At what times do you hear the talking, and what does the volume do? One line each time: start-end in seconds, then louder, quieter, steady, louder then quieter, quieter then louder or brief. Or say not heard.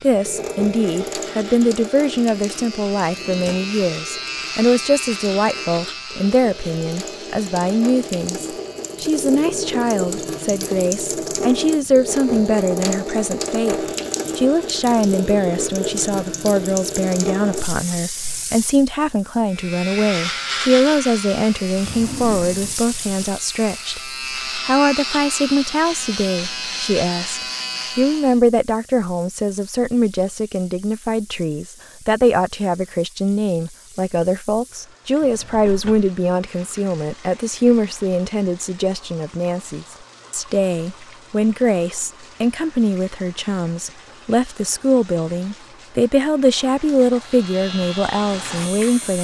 0.0-49.2 steady.